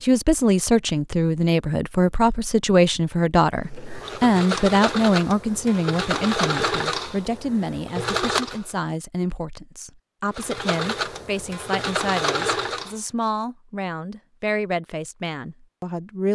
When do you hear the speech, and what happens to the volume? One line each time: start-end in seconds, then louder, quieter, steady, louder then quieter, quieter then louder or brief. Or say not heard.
0.0-16.3 quieter.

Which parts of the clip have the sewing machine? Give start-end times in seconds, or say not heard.
3.5-8.7, 10.3-12.9.